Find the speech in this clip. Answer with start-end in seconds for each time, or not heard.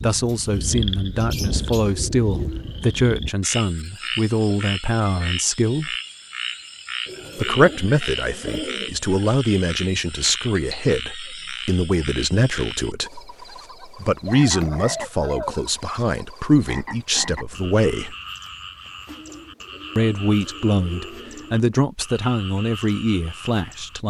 0.0-6.0, 7.3-18.1, 19.9-24.0.